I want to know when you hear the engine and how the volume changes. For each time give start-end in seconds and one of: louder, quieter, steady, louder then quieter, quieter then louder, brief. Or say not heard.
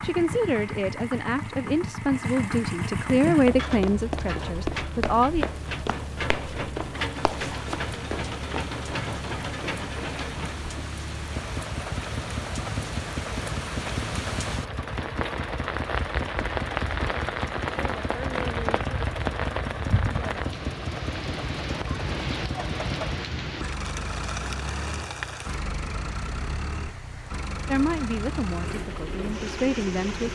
0.0-30.3 steady.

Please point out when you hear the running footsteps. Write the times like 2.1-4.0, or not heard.
3.2-8.7.